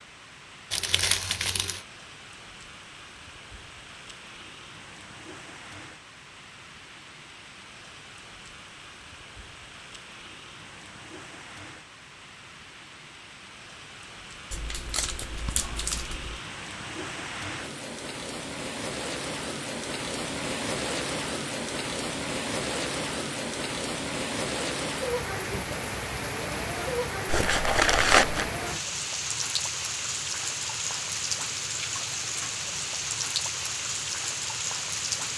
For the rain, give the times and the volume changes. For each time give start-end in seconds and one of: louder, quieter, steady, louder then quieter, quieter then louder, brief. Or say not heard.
0.0-35.3 louder.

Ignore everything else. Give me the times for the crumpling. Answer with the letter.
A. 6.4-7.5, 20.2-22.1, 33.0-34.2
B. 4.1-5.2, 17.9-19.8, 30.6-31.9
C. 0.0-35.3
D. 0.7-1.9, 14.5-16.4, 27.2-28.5
D.